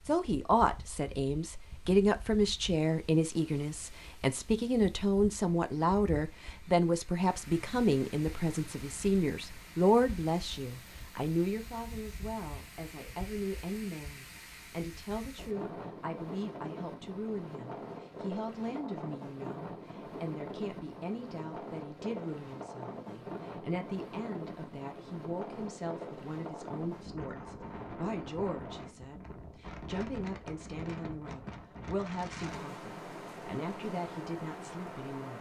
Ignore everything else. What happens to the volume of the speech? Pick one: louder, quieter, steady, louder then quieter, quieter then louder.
quieter.